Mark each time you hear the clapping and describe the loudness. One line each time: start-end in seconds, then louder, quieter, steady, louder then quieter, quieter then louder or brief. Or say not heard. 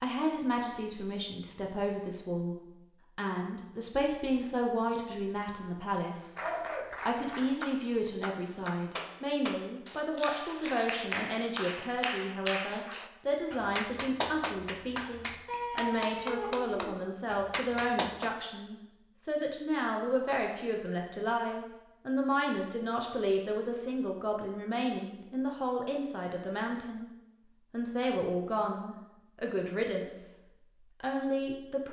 6.3-18.4 steady.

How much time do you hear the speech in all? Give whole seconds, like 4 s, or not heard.
30 s.